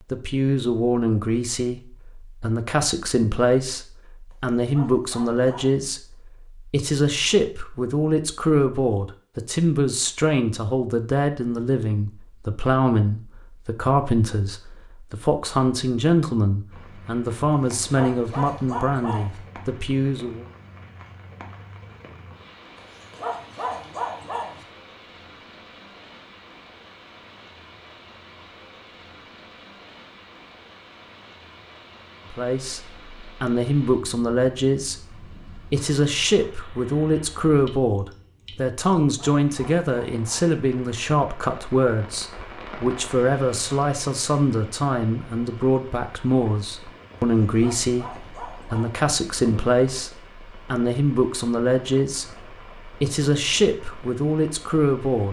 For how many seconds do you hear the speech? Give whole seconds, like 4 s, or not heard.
43 s.